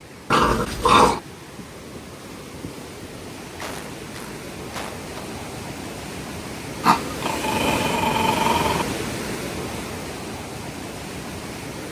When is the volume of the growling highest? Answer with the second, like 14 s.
1 s.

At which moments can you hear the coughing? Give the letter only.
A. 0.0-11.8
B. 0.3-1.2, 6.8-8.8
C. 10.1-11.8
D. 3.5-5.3
D.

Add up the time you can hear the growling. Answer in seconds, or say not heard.
3 s.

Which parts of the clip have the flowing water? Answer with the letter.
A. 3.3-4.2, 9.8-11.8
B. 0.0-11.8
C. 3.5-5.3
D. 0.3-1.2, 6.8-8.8
B.